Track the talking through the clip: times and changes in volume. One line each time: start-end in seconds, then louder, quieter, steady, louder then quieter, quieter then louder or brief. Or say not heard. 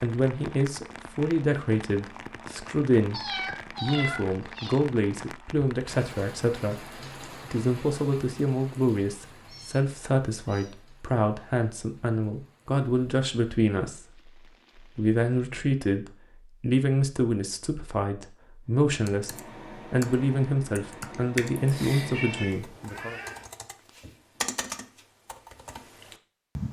0.0-23.2 steady.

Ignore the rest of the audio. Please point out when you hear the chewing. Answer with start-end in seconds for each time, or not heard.
not heard.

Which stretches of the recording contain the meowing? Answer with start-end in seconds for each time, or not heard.
3.1-4.8, 9.4-10.7, 22.1-23.4.